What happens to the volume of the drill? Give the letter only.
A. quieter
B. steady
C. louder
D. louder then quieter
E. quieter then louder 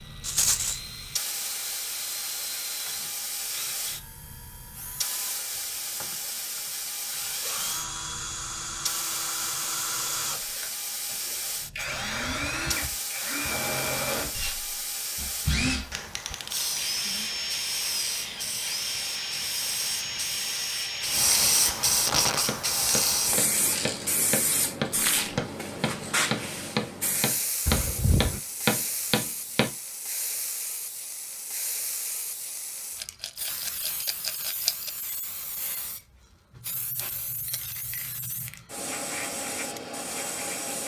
C.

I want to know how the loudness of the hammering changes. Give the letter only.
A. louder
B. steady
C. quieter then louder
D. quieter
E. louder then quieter
A.